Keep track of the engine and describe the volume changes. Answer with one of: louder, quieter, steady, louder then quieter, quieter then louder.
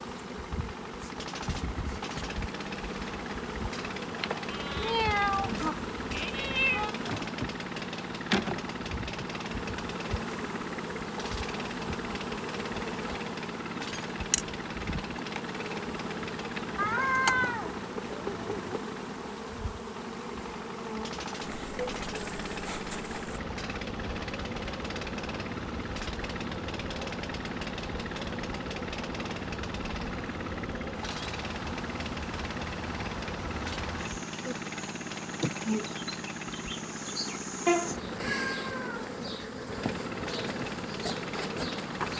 steady.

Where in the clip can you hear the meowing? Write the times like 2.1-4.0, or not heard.
4.5-7.0, 16.8-18.8, 37.6-39.0.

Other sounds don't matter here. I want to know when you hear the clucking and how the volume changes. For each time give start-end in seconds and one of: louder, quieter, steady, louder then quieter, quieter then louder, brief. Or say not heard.
not heard.